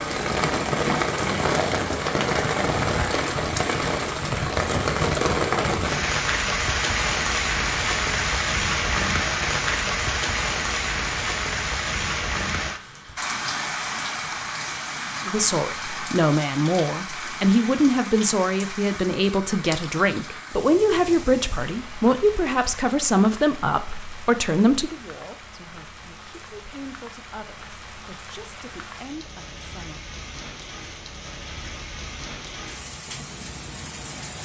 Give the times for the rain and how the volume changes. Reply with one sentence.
The rain can be heard from 0.0 to 34.4 s, getting quieter.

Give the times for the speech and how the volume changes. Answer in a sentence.
The speech can be heard from 15.2 to 30.1 s, getting quieter.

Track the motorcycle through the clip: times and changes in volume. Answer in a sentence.
You can't hear the motorcycle here.